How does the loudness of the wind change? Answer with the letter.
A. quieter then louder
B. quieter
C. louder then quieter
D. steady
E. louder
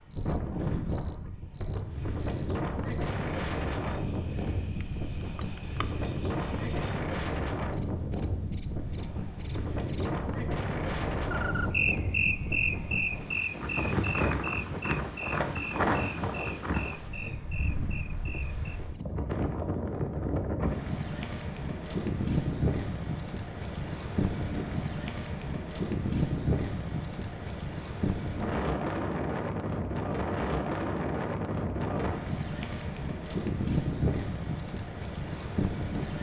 D.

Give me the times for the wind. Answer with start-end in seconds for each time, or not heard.
0.1-36.1.